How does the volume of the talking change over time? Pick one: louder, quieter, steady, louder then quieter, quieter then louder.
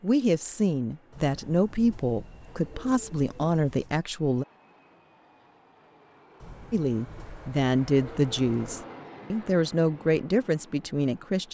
steady.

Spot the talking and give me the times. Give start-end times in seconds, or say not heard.
0.0-4.5, 6.7-11.4.